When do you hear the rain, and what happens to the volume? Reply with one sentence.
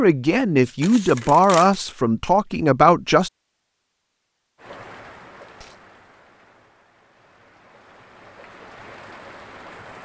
The rain can be heard from 4.5 to 9.9 s, getting quieter then louder.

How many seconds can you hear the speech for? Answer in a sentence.
The speech can be heard for 3 seconds in total.